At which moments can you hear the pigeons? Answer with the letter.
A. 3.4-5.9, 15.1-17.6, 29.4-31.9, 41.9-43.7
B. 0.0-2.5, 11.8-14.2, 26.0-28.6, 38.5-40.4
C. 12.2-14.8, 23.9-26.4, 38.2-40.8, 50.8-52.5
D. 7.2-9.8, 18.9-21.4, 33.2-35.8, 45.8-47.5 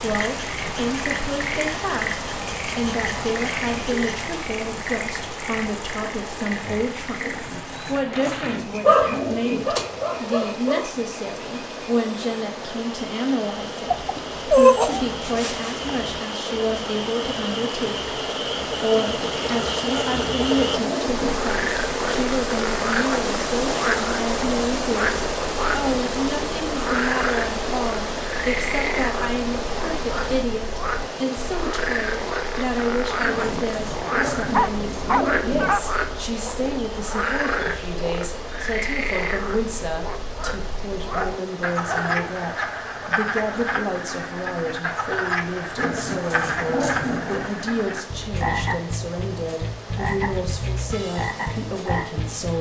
D.